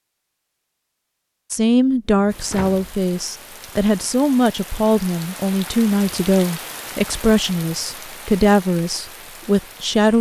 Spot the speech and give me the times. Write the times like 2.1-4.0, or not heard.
1.5-10.1.